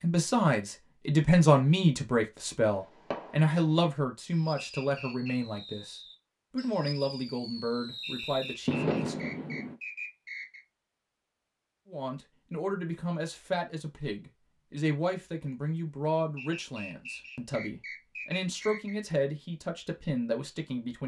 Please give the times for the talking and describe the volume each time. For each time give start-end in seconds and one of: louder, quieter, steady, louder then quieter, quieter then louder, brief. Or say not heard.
0.0-9.3 quieter
11.8-21.0 steady.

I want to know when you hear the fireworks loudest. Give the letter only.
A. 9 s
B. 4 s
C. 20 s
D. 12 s
A.